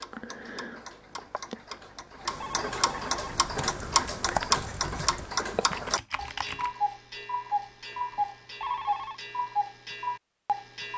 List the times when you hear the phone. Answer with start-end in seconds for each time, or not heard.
1.8-3.4, 8.0-9.2.